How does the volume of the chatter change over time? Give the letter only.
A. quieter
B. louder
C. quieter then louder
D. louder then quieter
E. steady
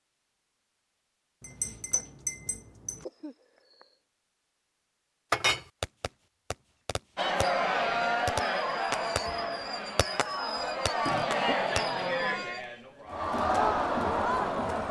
C.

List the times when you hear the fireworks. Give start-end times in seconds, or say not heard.
5.8-12.7.